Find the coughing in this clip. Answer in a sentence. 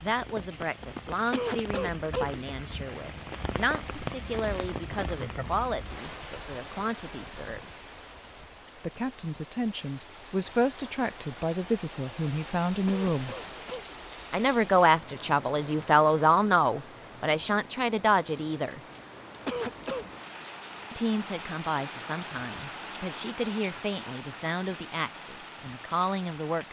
You can hear the coughing from 1.3 to 2.5 s, from 12.8 to 14.0 s and from 19.4 to 20.1 s.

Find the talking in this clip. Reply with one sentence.
The talking can be heard from 0.0 to 7.7 s, from 8.8 to 13.3 s, from 14.3 to 18.8 s and from 20.9 to 26.6 s.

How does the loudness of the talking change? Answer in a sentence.
The loudness of the talking goes up, then down.